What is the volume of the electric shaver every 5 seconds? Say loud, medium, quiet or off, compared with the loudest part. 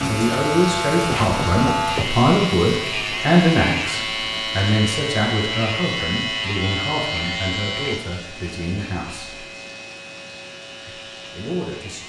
loud, loud, quiet.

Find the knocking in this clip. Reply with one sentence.
You can hear the knocking from 1.0 to 2.3 s.